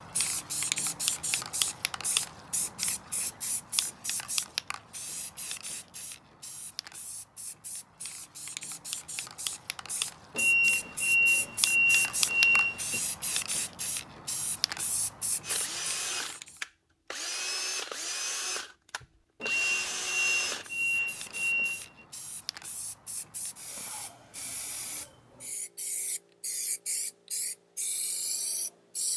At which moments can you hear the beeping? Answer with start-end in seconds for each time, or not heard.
10.3-13.0, 19.4-22.1.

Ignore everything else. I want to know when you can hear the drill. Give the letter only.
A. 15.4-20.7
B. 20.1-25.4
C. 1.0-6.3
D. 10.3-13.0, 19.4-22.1
A.